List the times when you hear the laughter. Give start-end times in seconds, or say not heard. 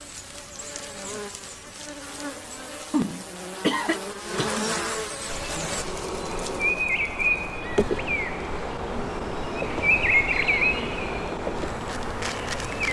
2.9-4.7.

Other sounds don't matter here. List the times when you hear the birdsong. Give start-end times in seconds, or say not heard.
5.2-12.8.